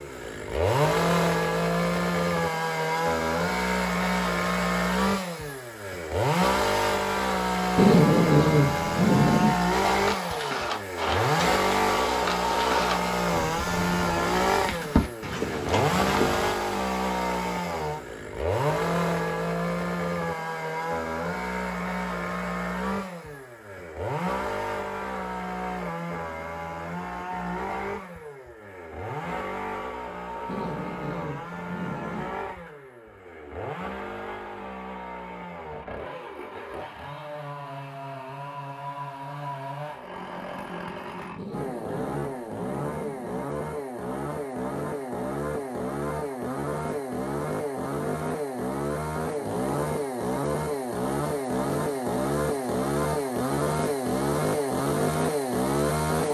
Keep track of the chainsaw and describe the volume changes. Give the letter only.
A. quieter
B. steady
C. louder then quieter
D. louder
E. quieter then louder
E.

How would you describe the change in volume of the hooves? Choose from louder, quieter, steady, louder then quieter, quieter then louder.
quieter then louder.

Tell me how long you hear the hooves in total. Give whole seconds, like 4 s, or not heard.
7 s.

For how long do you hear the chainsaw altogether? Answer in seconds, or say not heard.
56 s.